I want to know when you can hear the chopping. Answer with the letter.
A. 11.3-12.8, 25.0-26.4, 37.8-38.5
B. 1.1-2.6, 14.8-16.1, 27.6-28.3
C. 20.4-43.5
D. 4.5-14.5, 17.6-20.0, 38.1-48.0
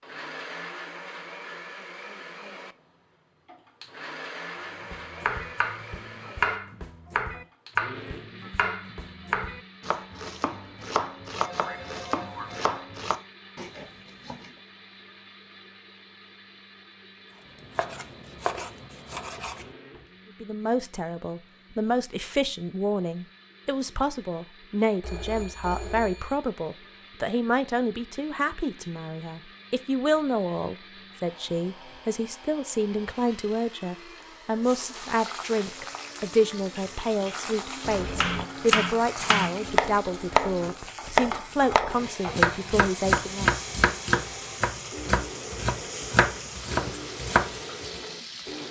D.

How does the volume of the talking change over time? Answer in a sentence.
The volume of the talking stays about the same.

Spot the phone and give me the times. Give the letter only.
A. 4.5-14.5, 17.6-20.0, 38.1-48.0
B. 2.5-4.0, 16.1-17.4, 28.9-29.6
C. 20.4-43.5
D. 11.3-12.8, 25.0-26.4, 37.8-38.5
D.